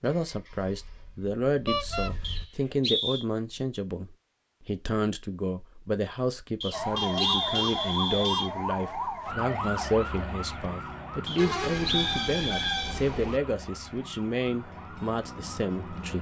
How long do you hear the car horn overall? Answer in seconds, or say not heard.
4 s.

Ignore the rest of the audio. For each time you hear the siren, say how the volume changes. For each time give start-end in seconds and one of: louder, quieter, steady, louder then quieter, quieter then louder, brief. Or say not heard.
6.7-16.1 quieter.